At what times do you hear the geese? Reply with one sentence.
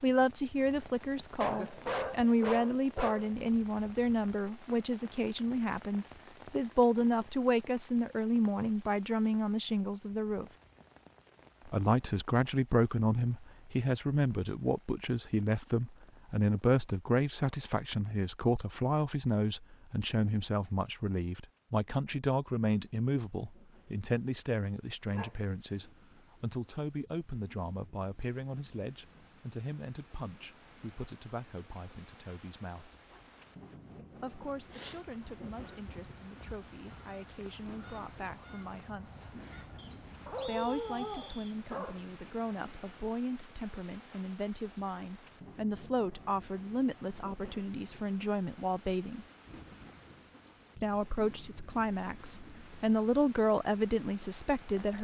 The geese can be heard from 34.6 to 40.5 s.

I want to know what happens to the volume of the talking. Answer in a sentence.
The loudness of the talking goes down, then up.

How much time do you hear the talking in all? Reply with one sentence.
You can hear the talking for 50 seconds altogether.